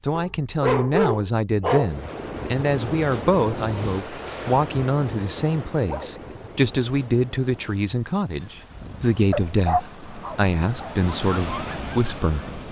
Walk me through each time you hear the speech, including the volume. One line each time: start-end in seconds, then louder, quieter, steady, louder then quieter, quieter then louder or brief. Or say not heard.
0.0-12.6 steady.